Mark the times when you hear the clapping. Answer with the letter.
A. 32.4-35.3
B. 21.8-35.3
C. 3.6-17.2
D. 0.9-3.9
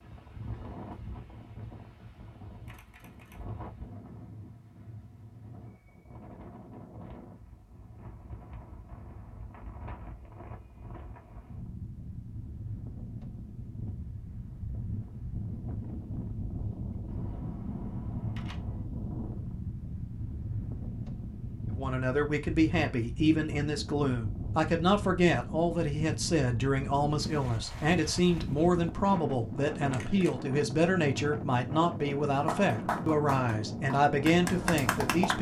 A.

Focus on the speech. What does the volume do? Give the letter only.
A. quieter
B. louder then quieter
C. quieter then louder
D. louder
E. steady
E.